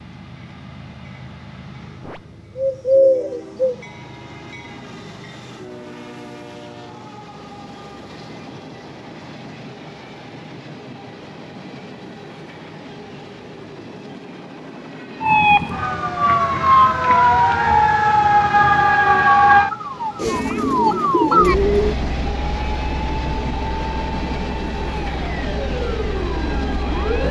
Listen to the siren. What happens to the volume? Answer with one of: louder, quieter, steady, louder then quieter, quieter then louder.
quieter.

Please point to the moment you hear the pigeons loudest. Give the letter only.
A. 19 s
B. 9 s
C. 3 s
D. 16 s
C.